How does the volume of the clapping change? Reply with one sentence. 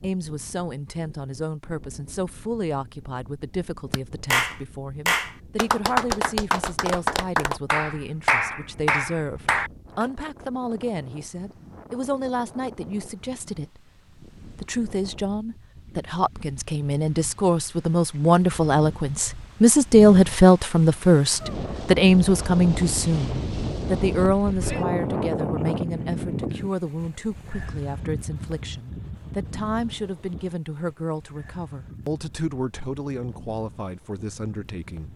The loudness of the clapping stays about the same.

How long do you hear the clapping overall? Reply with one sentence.
The clapping can be heard for 6 seconds in total.